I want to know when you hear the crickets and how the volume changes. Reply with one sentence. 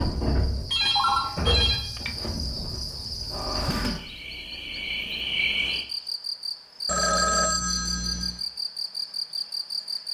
The crickets can be heard from 0.0 to 10.0 s, at a steady volume.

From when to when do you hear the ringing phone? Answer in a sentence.
The ringing phone can be heard from 0.7 to 2.1 s and from 6.8 to 8.4 s.